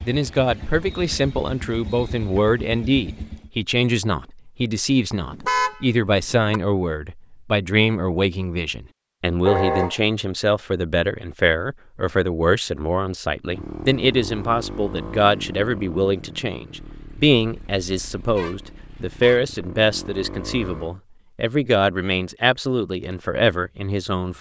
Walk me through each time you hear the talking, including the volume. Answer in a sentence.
The talking can be heard from 0.1 to 24.3 s, at a steady volume.